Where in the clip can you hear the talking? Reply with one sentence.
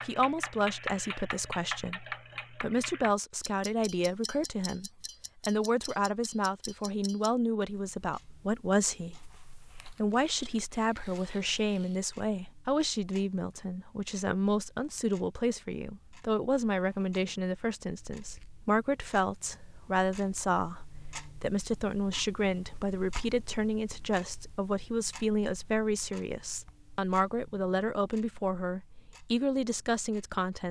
The talking can be heard from 0.1 to 9.2 s and from 9.9 to 30.6 s.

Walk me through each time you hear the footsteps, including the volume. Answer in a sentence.
You can't hear the footsteps here.